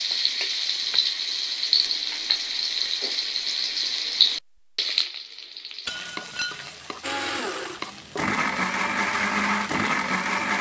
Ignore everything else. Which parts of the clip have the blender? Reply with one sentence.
You can hear the blender from 7.0 to 10.5 s.